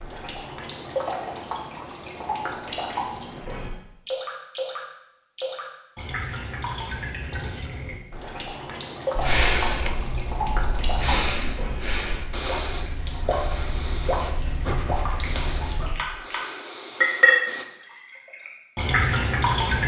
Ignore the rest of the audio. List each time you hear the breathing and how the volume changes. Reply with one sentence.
You can hear the breathing from 9.2 to 17.6 s, getting louder then quieter.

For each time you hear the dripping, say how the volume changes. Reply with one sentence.
The dripping can be heard from 0.0 to 19.8 s, getting louder.